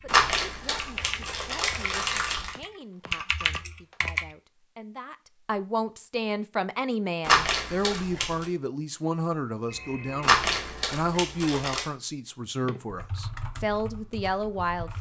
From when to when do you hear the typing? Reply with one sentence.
The typing can be heard from 0.0 to 4.3 s and from 12.6 to 14.9 s.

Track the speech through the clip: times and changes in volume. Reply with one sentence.
You can hear the speech from 0.0 to 14.9 s, getting louder.